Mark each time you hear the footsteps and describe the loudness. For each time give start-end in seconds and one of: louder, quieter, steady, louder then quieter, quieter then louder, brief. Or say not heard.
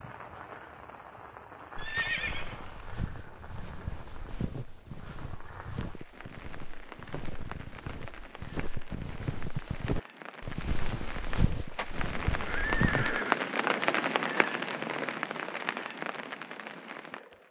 1.8-13.2 louder.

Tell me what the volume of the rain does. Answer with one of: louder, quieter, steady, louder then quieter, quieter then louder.
louder.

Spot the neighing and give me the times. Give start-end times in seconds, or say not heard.
1.8-2.9, 12.3-13.4.